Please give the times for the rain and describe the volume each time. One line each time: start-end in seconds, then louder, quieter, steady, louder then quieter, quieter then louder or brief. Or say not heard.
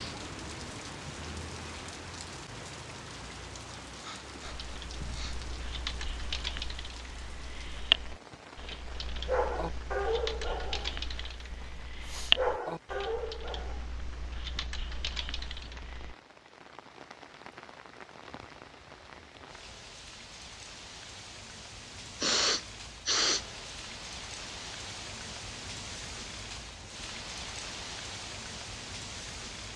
0.0-29.7 quieter then louder.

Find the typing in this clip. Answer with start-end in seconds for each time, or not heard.
4.5-16.1.